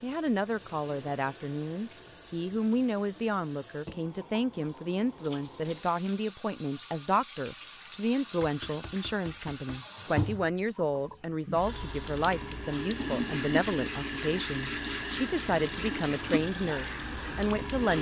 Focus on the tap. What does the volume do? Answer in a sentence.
The volume of the tap goes up.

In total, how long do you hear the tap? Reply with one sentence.
You can hear the tap for 18 seconds altogether.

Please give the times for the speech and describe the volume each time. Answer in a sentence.
You can hear the speech from 0.0 to 17.9 s, at a steady volume.